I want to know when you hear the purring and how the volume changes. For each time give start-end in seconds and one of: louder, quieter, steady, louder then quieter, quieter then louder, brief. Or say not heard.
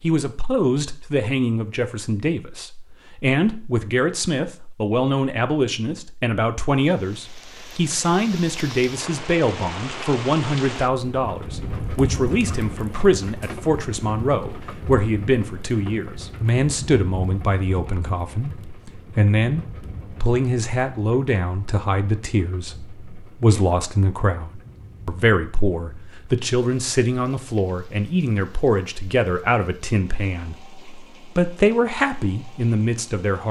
not heard.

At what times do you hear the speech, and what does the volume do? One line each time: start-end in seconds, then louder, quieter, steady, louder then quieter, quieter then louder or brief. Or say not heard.
0.0-33.4 steady.